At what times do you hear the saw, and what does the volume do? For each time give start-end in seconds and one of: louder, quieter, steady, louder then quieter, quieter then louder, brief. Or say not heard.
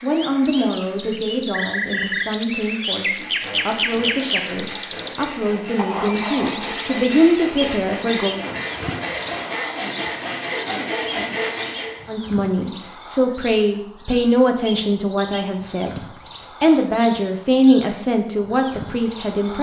3.0-12.1 louder.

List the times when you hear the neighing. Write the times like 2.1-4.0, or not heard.
not heard.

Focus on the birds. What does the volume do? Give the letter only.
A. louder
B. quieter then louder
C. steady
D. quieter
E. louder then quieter
D.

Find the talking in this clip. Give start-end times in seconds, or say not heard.
0.0-8.4, 12.1-16.0, 16.6-19.5.